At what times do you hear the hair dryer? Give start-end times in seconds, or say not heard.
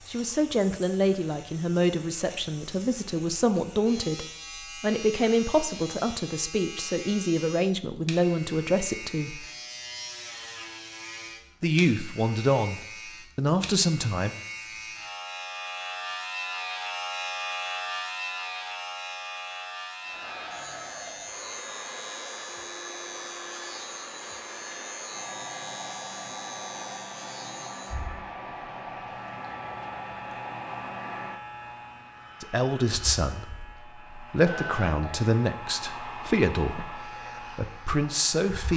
20.0-38.7.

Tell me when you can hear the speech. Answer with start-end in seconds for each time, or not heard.
0.1-9.4, 11.6-14.3, 32.4-38.7.